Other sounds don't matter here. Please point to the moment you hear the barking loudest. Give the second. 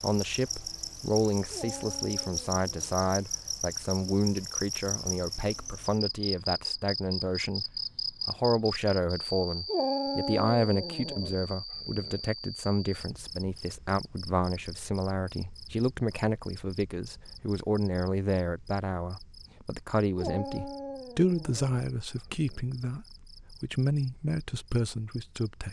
10 s.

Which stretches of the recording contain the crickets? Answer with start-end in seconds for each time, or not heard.
0.0-25.6.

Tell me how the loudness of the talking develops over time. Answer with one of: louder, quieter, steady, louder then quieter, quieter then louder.
steady.